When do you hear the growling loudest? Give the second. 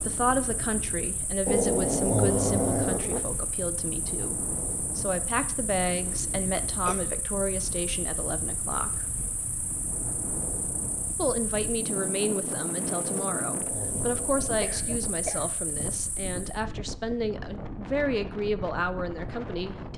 2 s.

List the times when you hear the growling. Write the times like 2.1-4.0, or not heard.
1.4-3.2, 13.1-14.8.